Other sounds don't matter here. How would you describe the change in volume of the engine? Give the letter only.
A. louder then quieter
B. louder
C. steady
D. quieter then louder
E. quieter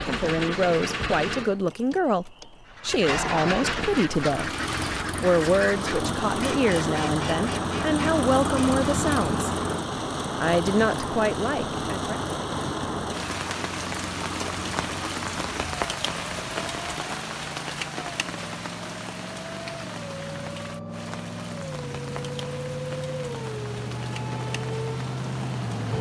D.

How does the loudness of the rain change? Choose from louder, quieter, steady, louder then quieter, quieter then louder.
quieter.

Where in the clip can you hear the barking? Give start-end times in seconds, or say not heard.
not heard.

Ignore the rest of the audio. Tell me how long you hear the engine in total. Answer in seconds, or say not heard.
26 s.